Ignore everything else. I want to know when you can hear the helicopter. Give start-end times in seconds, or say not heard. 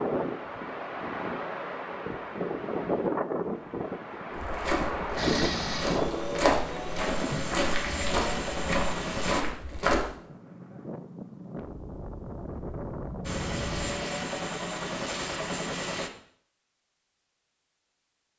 5.2-9.4, 13.2-16.1.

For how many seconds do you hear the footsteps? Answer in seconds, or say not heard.
6 s.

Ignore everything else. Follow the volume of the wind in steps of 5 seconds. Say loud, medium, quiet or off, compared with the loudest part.
loud, loud, medium, off.